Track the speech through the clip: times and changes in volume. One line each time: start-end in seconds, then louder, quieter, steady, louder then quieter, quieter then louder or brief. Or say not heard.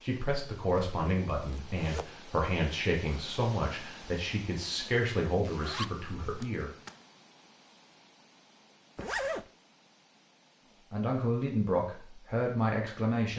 0.0-6.7 steady
10.9-13.3 brief.